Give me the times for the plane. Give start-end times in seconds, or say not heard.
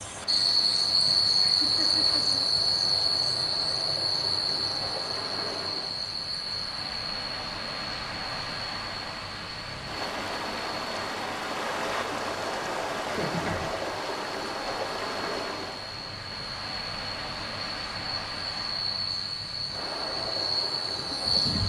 not heard.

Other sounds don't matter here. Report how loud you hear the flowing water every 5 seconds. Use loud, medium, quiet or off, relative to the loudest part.
medium, medium, loud, medium, medium.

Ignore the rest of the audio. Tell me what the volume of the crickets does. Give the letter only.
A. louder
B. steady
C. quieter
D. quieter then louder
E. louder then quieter
D.